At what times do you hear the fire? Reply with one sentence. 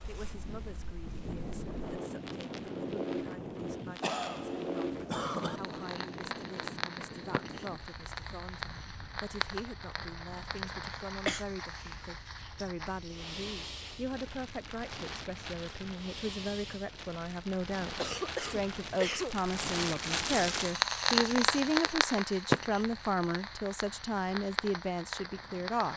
The fire can be heard from 0.0 to 25.9 s.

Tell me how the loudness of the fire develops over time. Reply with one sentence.
The volume of the fire goes up.